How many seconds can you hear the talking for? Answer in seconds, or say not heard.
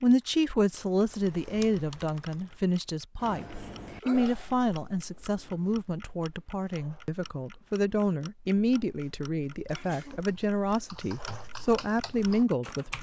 13 s.